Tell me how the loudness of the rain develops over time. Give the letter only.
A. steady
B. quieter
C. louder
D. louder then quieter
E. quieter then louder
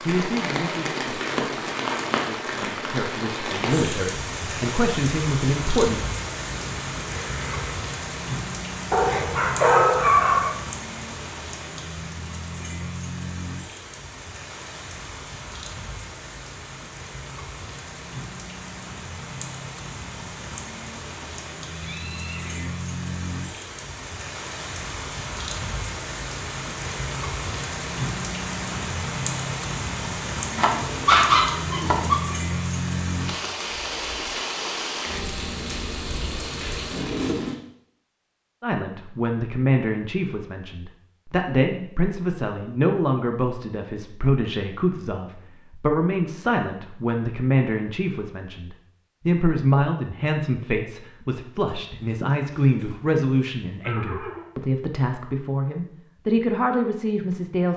E.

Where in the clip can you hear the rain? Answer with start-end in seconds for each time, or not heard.
0.0-37.6.